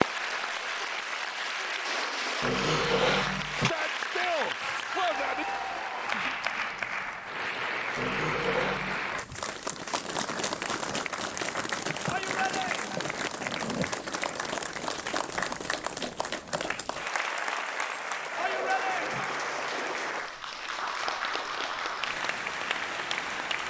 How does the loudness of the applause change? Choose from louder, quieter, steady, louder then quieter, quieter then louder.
steady.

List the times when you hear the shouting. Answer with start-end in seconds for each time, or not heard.
3.5-5.5, 12.1-13.1, 18.4-19.4.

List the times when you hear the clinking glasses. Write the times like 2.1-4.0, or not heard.
not heard.